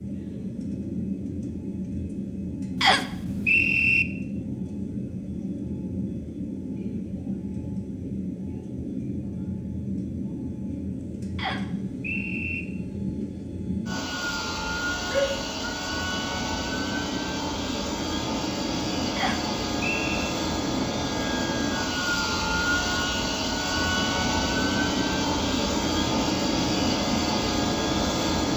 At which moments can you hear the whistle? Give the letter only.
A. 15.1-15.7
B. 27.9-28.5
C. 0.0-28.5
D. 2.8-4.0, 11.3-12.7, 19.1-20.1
D.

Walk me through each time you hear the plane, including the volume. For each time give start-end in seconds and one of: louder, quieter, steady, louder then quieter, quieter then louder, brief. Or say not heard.
0.0-28.5 louder.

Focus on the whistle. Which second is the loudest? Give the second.
4 s.